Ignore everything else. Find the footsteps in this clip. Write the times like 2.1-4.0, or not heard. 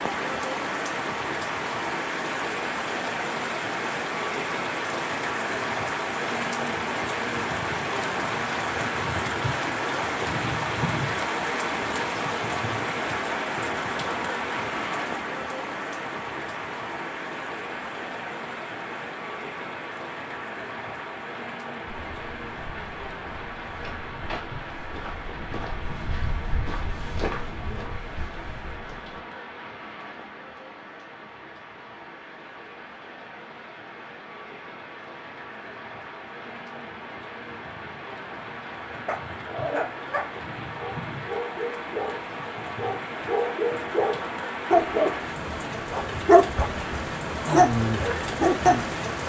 21.9-29.2.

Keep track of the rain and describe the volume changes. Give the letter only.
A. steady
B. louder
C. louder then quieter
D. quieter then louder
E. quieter
D.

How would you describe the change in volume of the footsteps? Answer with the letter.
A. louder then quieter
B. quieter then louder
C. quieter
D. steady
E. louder
A.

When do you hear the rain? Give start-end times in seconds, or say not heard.
0.0-49.2.